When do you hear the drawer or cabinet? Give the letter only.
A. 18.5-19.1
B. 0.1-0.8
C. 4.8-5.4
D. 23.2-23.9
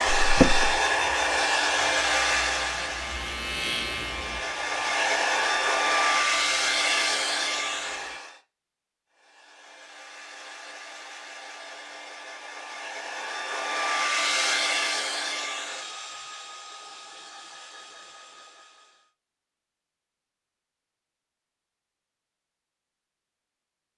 B.